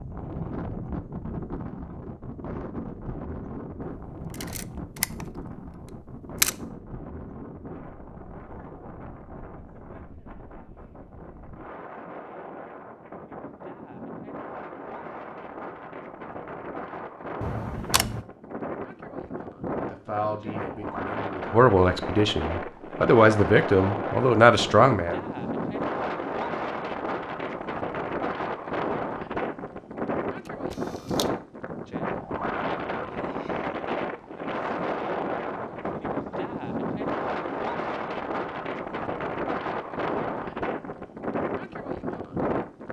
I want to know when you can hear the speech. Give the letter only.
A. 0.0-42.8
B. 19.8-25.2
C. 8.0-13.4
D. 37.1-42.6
B.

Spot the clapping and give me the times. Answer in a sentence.
You can't hear the clapping here.